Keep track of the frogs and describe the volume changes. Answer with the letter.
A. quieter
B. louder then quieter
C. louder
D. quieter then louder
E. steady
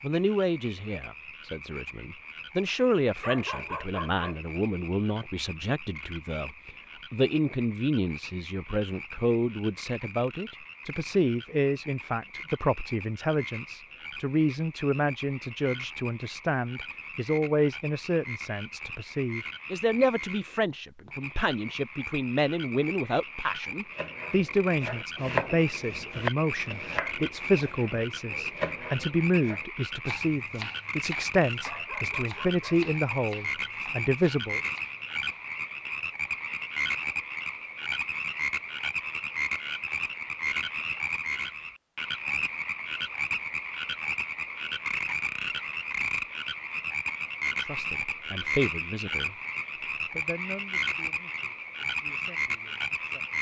C.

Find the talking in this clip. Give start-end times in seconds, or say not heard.
0.0-34.6, 47.6-49.4, 50.1-53.3.